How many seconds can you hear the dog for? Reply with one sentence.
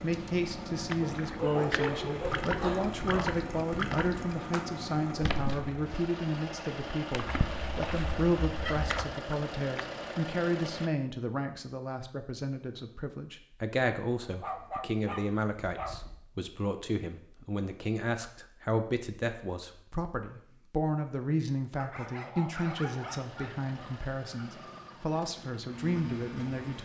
You can hear the dog for 9 seconds altogether.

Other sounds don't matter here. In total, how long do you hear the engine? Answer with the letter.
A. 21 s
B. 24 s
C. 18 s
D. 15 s
D.